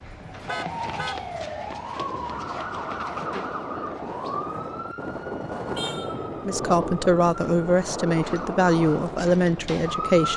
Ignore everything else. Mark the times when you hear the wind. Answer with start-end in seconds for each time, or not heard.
1.9-10.3.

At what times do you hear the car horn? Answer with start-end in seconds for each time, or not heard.
0.0-1.2, 5.8-6.2.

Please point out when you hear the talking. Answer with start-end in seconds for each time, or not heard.
6.5-10.3.